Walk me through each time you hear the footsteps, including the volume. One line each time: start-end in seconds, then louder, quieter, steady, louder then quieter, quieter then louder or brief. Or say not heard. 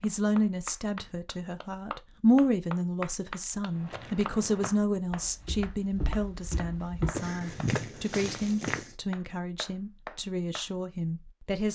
3.7-8.9 quieter then louder.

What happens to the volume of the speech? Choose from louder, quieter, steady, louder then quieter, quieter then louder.
quieter.